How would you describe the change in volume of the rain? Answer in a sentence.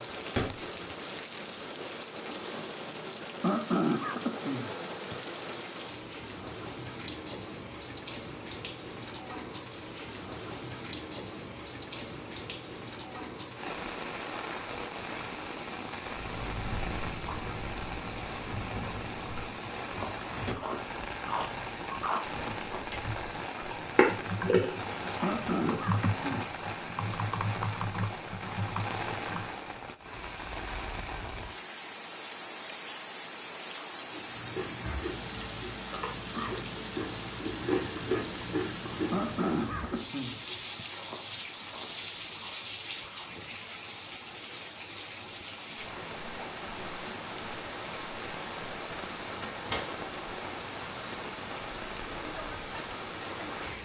The loudness of the rain stays about the same.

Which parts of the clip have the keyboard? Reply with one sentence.
The keyboard can be heard from 22.2 to 29.6 s.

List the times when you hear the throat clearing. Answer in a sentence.
The throat clearing can be heard from 3.4 to 5.2 s, from 25.2 to 26.9 s and from 39.1 to 40.9 s.